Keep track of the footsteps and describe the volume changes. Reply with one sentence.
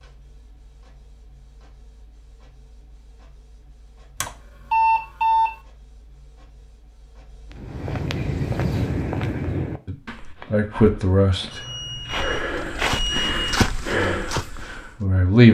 The loudness of the footsteps goes down, then up.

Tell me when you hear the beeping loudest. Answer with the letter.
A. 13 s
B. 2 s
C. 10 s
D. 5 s
D.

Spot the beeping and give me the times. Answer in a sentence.
The beeping can be heard from 4.2 to 5.5 s and from 11.5 to 13.7 s.